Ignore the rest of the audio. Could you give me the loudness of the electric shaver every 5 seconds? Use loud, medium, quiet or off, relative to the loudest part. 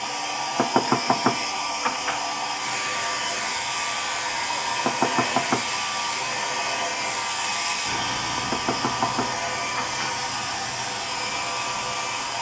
loud, loud, medium.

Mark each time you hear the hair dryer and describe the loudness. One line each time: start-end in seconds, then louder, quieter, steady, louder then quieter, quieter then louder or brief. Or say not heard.
0.0-12.3 steady.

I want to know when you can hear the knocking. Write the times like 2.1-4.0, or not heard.
0.6-2.2, 4.8-5.7, 8.4-9.9.